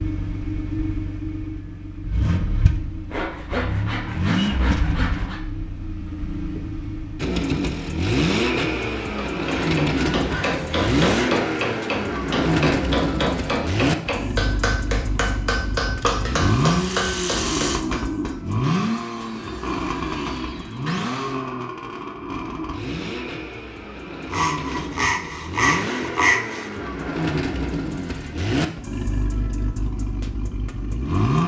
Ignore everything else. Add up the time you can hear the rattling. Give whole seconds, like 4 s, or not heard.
2 s.